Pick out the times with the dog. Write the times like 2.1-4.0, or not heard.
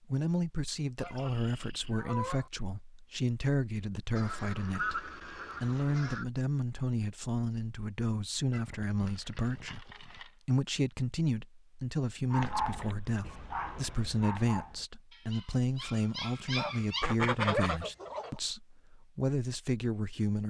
12.3-17.6.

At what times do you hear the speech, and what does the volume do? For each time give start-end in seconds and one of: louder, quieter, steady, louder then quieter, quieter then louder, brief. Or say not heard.
0.1-20.4 steady.